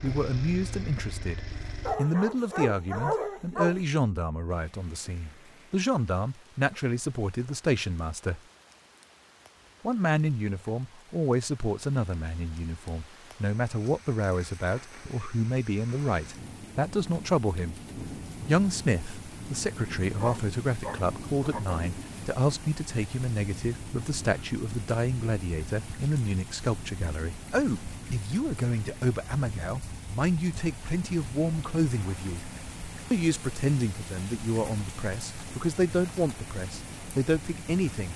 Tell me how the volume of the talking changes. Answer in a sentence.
The loudness of the talking stays about the same.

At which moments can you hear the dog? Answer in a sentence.
The dog can be heard from 1.9 to 3.8 s and from 20.1 to 21.8 s.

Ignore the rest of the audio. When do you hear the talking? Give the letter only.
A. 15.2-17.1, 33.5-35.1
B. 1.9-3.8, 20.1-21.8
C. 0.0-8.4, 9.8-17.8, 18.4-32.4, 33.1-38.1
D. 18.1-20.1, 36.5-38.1
C.